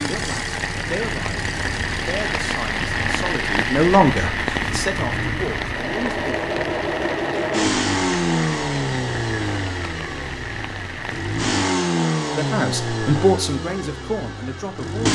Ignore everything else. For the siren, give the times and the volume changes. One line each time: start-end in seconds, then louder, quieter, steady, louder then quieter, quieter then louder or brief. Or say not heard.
not heard.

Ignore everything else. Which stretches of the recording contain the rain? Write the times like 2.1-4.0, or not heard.
0.0-11.6.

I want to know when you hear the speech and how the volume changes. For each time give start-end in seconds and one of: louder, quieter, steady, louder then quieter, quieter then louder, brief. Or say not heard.
0.0-6.5 louder then quieter
12.2-15.1 brief.